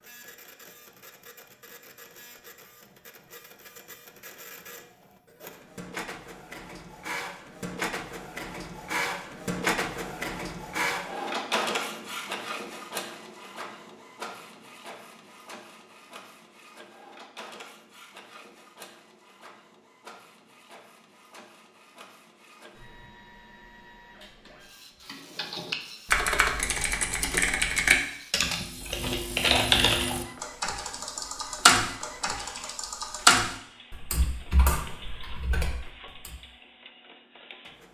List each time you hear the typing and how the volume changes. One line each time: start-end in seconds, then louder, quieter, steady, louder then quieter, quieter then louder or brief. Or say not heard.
25.1-36.4 quieter.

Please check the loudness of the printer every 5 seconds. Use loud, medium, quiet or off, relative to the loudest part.
quiet, loud, loud, quiet, quiet, quiet, quiet, quiet.